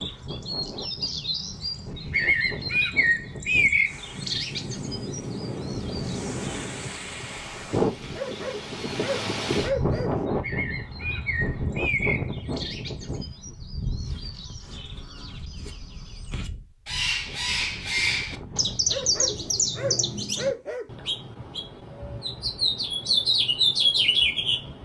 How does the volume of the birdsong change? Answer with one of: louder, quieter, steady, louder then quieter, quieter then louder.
quieter then louder.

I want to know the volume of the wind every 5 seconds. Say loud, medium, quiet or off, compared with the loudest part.
medium, loud, loud, quiet, off.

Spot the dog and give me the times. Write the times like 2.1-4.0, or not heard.
8.0-10.2, 18.4-20.9.